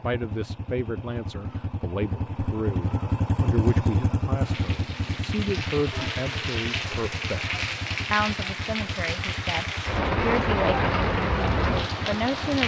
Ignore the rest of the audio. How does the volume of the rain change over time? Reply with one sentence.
The loudness of the rain goes up.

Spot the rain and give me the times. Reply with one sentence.
You can hear the rain from 4.4 to 12.6 s.